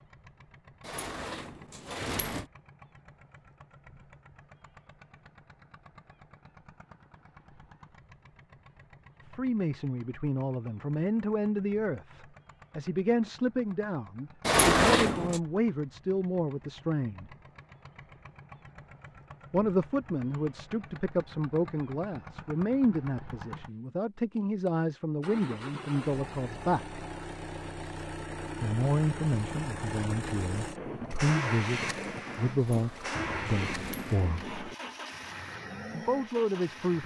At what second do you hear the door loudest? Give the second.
15 s.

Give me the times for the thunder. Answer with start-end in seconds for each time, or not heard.
30.8-34.8.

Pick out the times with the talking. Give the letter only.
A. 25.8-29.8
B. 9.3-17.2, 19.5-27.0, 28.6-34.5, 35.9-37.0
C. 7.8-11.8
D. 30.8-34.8
B.